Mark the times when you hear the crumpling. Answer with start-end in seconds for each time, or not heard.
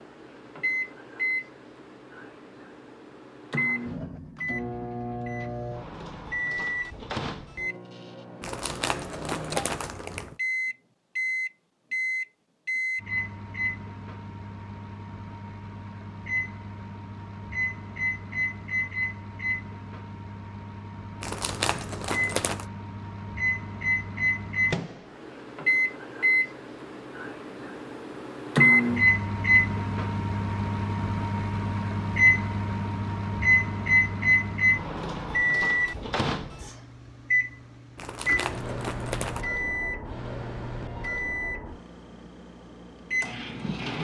8.4-10.3, 21.2-22.6, 38.0-39.5.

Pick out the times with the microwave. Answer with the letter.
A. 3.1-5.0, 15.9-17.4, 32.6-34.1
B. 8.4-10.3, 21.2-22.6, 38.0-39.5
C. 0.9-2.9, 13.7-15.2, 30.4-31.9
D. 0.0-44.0
D.